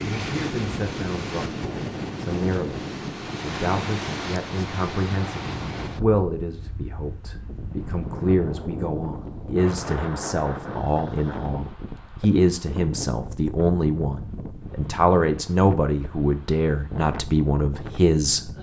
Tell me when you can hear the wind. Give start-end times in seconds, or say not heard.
0.0-18.5.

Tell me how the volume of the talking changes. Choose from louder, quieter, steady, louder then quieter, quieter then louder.
louder.